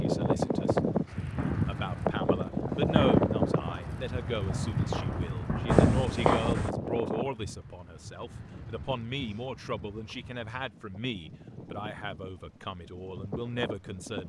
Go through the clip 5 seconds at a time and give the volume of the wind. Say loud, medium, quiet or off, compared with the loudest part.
loud, medium, quiet.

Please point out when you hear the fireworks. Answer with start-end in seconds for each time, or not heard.
1.4-6.7.